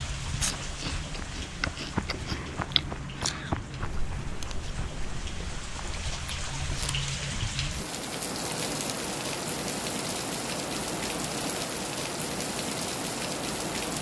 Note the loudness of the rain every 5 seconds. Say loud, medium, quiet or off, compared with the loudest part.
medium, loud, loud.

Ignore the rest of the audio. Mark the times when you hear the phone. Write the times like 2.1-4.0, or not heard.
not heard.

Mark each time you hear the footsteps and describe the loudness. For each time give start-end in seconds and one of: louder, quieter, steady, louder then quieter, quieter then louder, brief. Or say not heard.
0.0-6.1 louder then quieter.